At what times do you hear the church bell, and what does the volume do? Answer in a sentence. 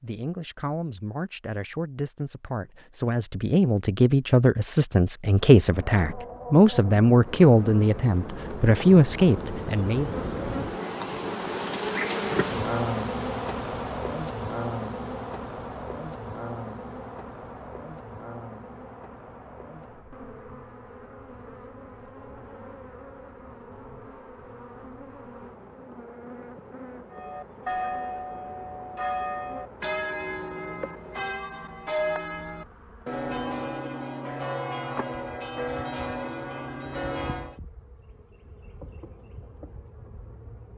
The church bell can be heard from 27.1 to 37.6 s, at a steady volume.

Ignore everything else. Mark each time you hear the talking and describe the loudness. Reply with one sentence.
You can hear the talking from 0.0 to 10.1 s, getting louder.